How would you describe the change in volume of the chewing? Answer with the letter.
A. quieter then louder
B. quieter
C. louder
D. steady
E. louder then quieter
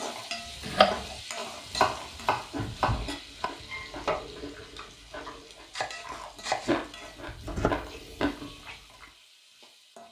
C.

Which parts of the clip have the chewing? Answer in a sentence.
The chewing can be heard from 2.3 to 9.1 s.